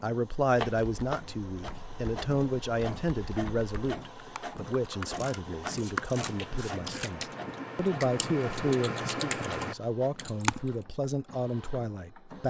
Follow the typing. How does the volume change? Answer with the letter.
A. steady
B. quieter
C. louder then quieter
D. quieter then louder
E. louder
E.